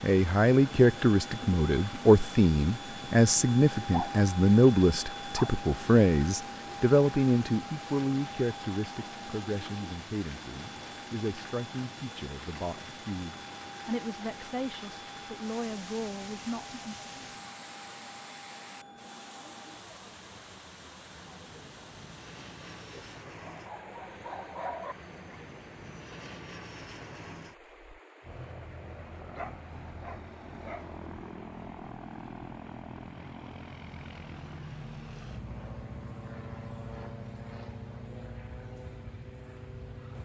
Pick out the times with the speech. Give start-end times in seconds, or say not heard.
0.0-16.9.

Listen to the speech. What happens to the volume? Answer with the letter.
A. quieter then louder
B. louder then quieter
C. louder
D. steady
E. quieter
E.